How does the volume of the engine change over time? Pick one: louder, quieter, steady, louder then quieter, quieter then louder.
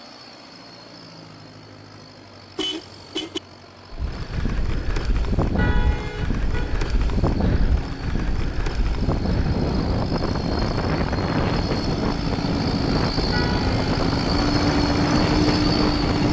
louder.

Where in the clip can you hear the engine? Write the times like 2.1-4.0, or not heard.
0.0-16.2.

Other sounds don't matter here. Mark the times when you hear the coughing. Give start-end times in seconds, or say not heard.
not heard.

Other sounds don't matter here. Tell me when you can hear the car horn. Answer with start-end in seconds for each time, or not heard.
2.5-3.4, 5.5-6.8, 13.3-13.8.